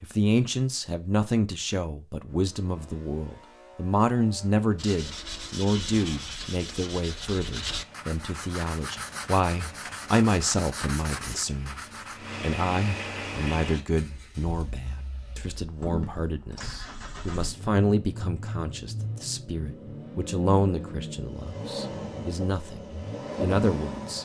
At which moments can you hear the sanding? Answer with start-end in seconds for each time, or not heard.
4.8-12.4.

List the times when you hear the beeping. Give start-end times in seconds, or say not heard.
not heard.